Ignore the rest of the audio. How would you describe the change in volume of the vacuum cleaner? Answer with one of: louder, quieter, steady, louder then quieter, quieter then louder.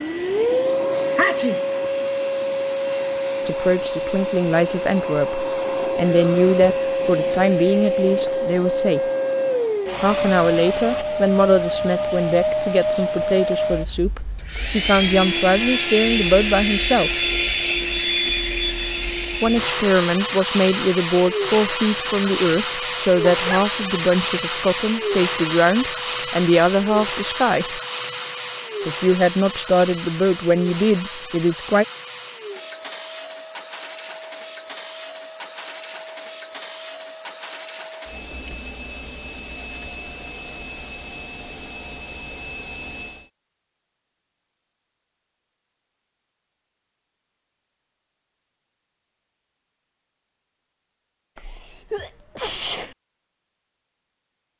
quieter.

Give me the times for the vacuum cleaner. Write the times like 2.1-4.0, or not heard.
0.0-43.3.